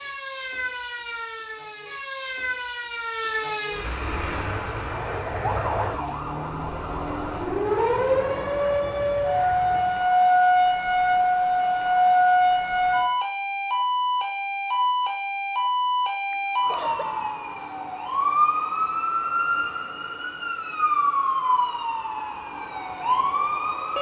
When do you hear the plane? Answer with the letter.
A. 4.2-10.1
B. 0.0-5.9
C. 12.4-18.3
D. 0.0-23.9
A.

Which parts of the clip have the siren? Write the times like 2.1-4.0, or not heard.
0.0-23.9.